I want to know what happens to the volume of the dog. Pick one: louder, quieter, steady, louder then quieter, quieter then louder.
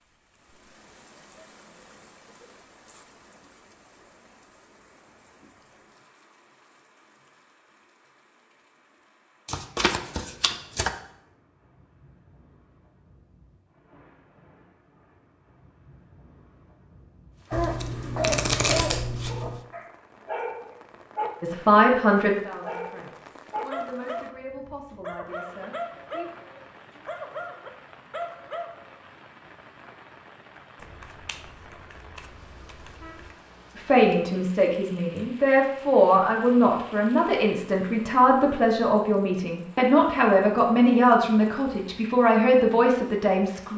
quieter.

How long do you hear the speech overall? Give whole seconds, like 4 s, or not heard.
15 s.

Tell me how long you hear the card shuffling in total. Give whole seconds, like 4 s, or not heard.
6 s.